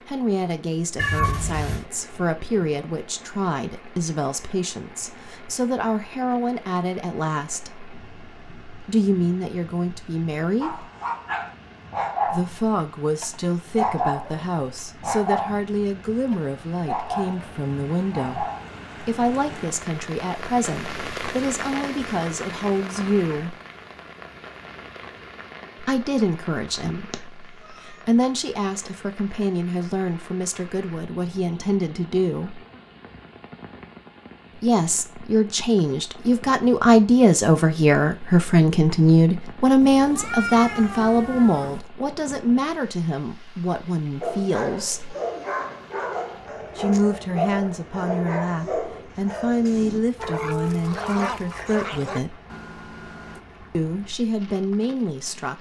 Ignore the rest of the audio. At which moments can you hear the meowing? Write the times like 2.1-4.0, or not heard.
0.9-1.9, 27.1-27.9, 39.8-41.8.